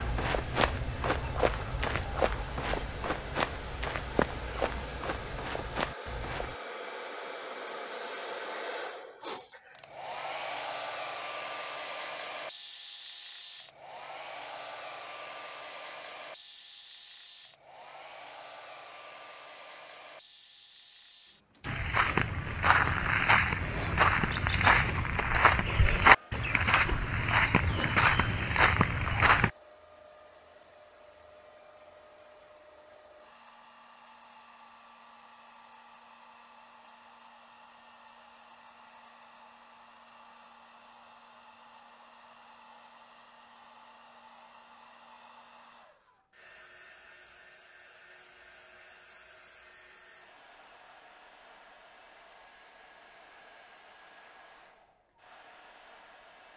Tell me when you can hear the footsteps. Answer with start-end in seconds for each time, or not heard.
0.0-6.5, 21.6-29.5.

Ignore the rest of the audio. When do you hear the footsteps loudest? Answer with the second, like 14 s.
26 s.